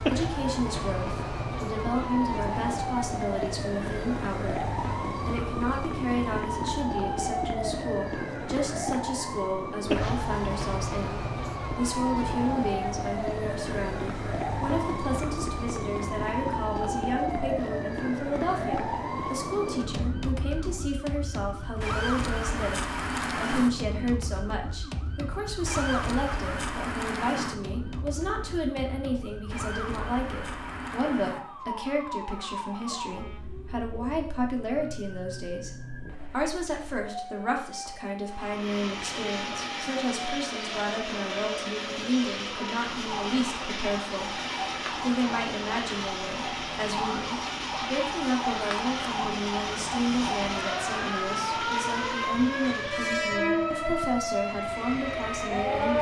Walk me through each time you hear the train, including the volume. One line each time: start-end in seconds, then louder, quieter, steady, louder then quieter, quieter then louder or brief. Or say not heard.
38.2-55.9 steady.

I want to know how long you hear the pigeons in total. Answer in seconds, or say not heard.
not heard.